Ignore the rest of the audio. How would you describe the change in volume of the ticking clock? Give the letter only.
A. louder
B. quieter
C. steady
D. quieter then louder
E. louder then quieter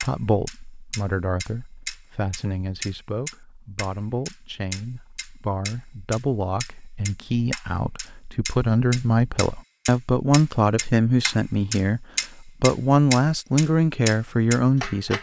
A.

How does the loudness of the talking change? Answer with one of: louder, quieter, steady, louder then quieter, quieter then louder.
louder.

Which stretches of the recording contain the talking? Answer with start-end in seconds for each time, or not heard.
0.0-15.1.